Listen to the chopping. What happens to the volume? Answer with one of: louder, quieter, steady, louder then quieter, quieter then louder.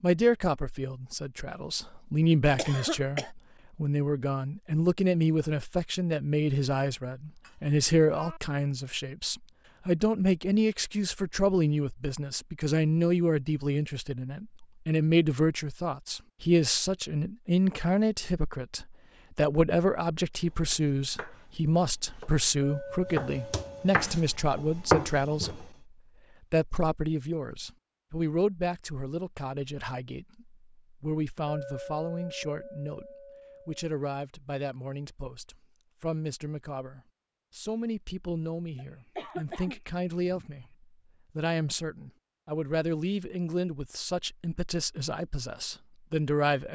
louder.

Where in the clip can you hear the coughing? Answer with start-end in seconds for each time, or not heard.
2.5-3.3, 38.8-40.7.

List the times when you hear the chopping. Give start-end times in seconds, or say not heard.
20.4-25.6.